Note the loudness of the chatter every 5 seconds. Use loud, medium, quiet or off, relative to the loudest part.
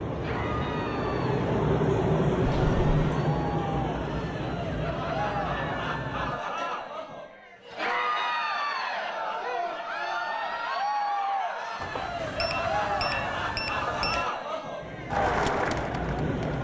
medium, loud, loud, loud.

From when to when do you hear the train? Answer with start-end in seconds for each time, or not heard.
0.0-6.5, 14.8-16.5.